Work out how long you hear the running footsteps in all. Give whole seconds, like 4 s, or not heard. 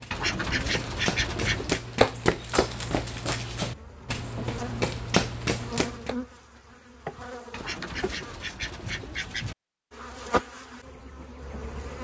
6 s.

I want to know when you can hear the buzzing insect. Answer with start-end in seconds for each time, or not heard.
3.6-8.3, 9.9-11.9.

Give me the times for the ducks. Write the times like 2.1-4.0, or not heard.
0.1-1.8, 7.5-9.6.